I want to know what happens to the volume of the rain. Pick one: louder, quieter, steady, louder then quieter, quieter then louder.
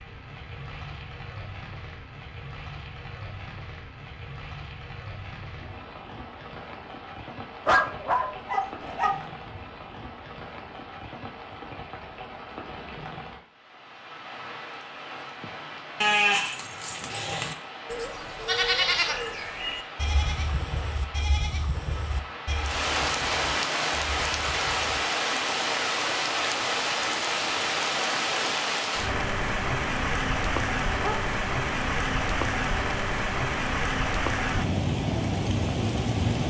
louder.